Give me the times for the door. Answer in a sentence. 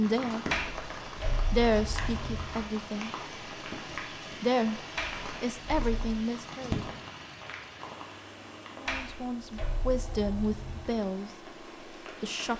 You can hear the door from 0.5 to 2.6 s, from 5.0 to 6.2 s and from 8.8 to 11.0 s.